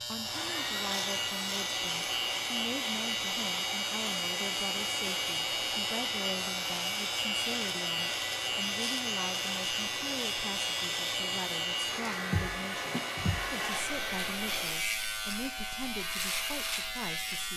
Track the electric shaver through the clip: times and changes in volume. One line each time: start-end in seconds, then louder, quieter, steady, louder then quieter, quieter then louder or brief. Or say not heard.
0.0-17.5 steady.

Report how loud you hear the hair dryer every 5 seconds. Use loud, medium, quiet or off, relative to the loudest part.
loud, loud, loud, off.